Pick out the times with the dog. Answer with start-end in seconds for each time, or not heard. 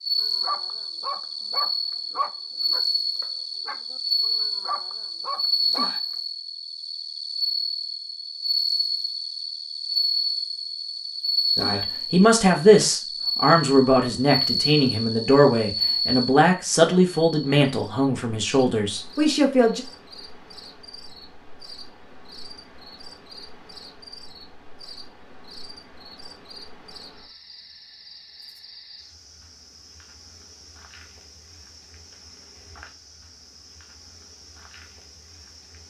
0.2-6.0.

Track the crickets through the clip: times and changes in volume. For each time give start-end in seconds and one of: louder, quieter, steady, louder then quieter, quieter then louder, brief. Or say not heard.
0.0-35.8 quieter.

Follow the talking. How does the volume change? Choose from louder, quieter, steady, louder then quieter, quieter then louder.
quieter.